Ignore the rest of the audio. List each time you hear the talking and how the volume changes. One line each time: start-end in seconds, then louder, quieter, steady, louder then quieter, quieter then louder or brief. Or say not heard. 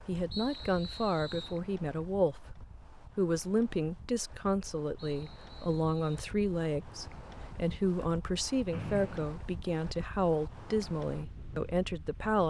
0.1-12.4 steady.